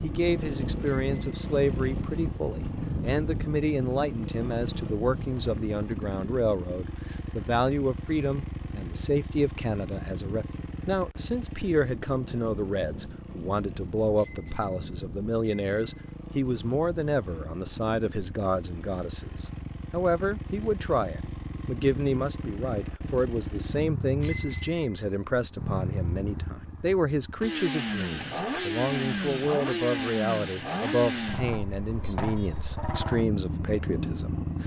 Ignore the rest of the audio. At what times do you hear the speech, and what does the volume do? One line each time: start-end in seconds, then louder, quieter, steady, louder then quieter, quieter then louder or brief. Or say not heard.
0.0-34.6 steady.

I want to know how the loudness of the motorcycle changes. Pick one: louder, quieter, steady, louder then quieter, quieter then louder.
quieter then louder.